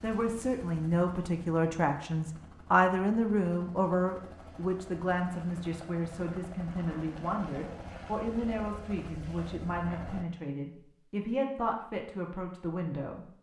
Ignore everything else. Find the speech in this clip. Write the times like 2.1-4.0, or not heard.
0.0-13.2.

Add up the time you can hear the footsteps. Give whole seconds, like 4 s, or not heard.
not heard.